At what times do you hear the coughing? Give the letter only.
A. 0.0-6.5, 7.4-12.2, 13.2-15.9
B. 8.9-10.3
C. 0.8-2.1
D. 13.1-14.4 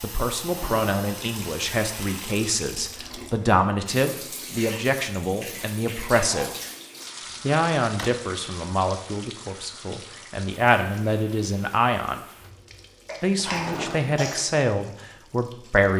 D.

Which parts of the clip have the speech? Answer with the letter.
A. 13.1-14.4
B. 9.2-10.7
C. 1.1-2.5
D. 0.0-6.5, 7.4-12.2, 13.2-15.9
D.